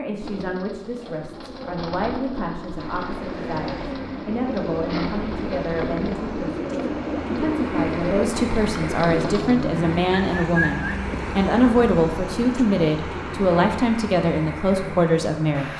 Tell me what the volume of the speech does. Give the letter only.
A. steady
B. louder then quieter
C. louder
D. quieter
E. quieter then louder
C.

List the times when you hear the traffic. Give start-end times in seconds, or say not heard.
2.8-15.7.